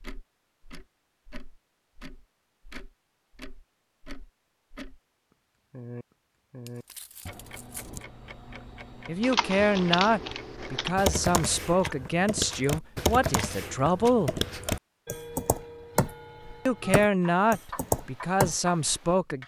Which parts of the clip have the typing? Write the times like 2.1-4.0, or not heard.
9.2-18.9.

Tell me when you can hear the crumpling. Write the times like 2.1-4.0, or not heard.
6.7-8.1.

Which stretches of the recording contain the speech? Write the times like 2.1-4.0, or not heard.
9.1-14.4, 16.6-19.4.